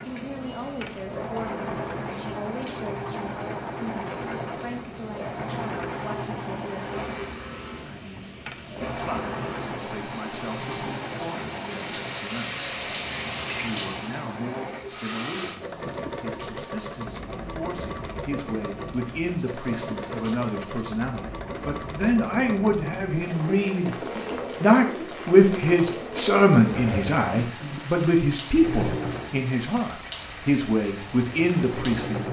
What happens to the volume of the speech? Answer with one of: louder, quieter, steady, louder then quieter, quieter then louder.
louder.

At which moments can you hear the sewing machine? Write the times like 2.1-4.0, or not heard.
0.0-32.2.